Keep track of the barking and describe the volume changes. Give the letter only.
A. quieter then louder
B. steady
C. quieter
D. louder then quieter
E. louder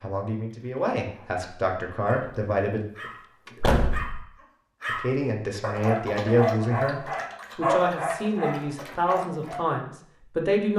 E.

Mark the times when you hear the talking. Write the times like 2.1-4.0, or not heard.
0.0-2.8, 4.8-10.7.